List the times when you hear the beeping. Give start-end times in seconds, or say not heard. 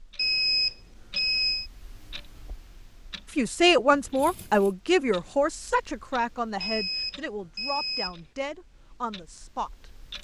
0.1-1.7, 6.6-8.2.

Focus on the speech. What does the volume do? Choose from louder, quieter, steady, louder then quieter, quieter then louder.
quieter.